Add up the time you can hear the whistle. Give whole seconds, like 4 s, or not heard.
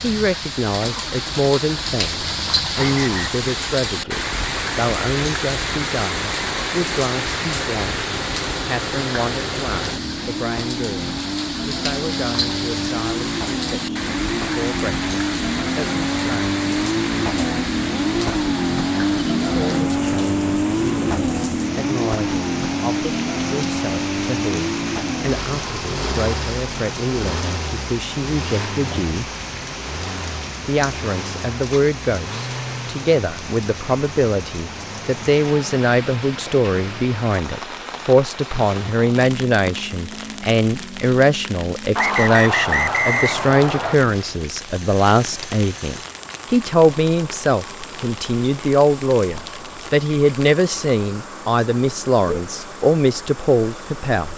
3 s.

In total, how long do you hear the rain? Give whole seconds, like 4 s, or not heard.
54 s.